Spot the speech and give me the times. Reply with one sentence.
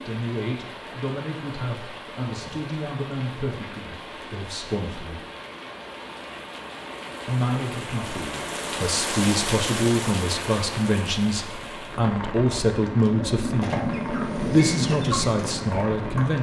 You can hear the speech from 0.1 to 5.2 s and from 7.2 to 16.3 s.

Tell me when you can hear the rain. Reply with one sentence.
You can hear the rain from 0.0 to 16.3 s.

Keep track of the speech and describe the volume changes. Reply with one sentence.
The loudness of the speech goes up.